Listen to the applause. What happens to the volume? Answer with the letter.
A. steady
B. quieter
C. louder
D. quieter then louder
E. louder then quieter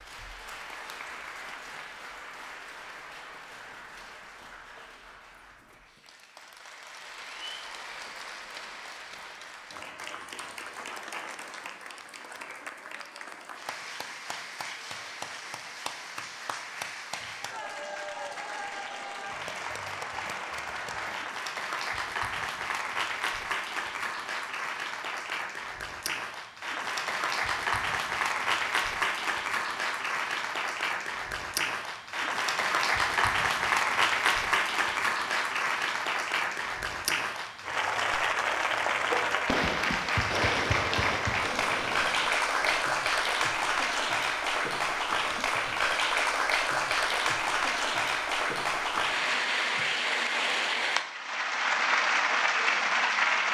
C.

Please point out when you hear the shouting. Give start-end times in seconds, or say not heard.
not heard.